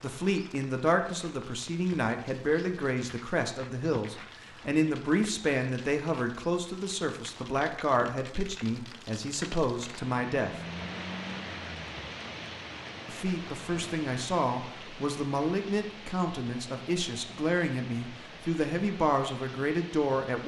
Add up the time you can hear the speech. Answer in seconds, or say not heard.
18 s.